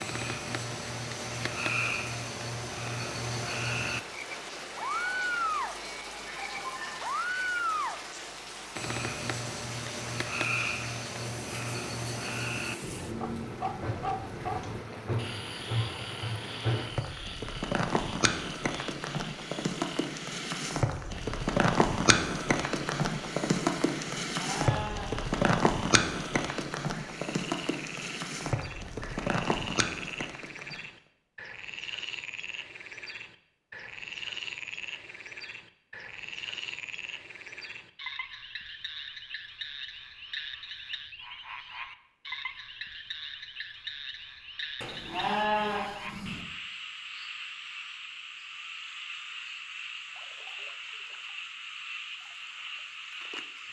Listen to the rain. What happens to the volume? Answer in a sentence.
The loudness of the rain goes up.